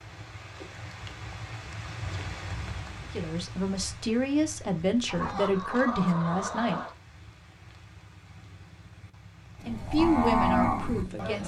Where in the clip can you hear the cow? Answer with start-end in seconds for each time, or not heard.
9.6-11.4.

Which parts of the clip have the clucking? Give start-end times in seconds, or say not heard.
5.0-7.0.